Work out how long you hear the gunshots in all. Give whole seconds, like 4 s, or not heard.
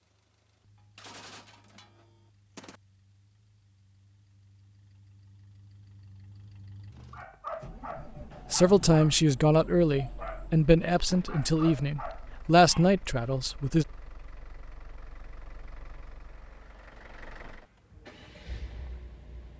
2 s.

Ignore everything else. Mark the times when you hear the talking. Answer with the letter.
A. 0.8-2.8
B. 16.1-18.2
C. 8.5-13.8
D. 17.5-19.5
C.